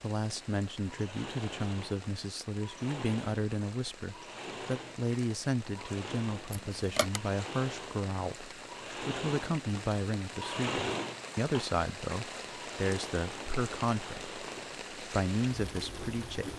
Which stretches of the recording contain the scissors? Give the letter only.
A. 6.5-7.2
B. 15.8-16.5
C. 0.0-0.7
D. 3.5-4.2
A.